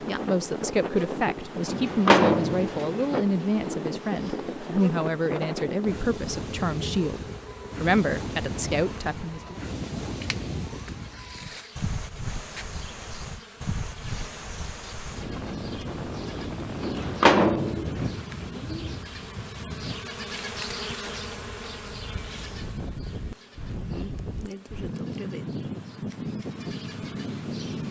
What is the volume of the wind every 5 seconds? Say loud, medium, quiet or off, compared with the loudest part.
loud, loud, loud, loud, medium, loud.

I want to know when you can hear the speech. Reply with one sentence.
The speech can be heard from 0.0 to 7.2 s and from 7.8 to 9.4 s.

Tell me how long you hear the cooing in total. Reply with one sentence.
The cooing can be heard for 5 seconds in total.